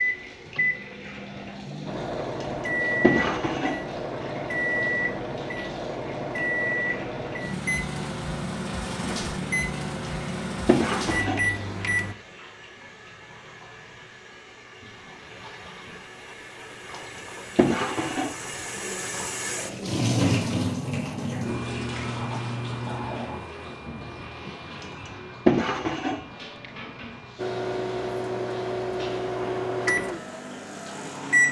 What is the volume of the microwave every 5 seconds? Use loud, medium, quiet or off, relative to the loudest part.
loud, loud, loud, off, off, loud, loud.